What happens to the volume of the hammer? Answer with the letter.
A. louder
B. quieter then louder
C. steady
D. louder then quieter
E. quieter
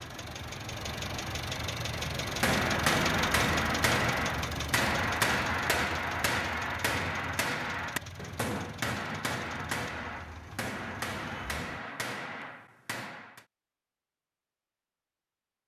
E.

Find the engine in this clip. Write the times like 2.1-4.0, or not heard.
0.0-11.8.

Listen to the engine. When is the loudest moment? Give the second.
3 s.